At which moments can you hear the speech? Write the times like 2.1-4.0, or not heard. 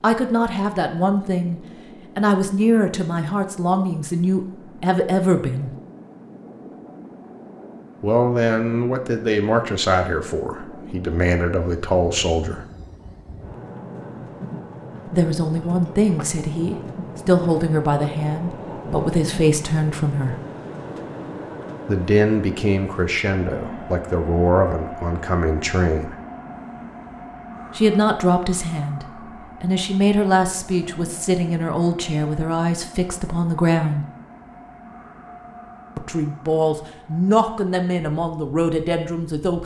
0.0-5.7, 8.0-12.7, 15.1-20.4, 21.9-26.1, 27.8-34.0, 36.0-39.6.